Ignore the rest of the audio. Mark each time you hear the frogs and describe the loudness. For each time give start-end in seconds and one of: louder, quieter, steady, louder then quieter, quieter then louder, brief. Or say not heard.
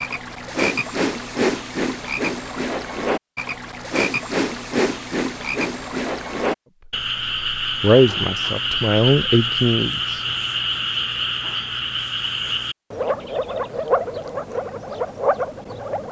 0.0-16.0 steady.